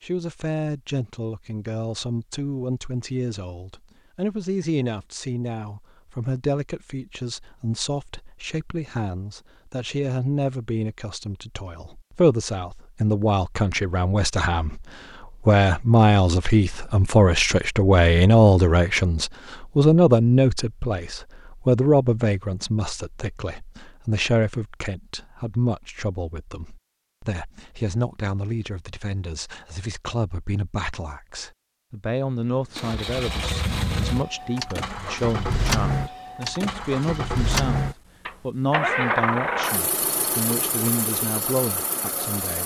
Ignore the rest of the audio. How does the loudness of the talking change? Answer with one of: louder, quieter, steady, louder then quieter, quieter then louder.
louder then quieter.